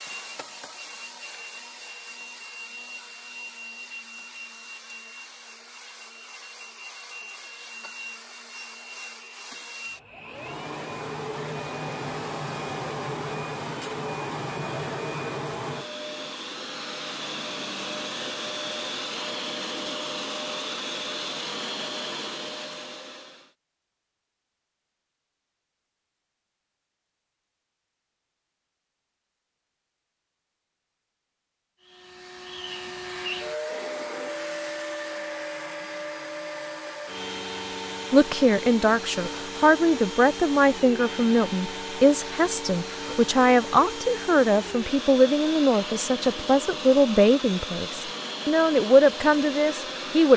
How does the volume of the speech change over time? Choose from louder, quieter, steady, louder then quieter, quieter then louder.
steady.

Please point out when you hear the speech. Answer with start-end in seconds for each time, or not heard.
38.1-50.3.